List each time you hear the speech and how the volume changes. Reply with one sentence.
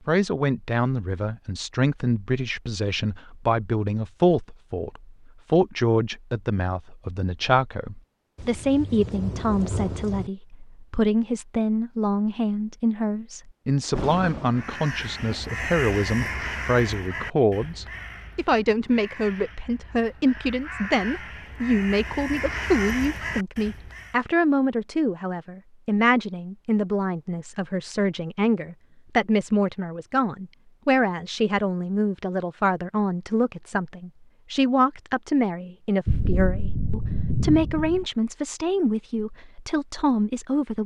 The speech can be heard from 0.1 to 40.8 s, at a steady volume.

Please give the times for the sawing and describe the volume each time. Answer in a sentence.
The sawing can't be heard in this clip.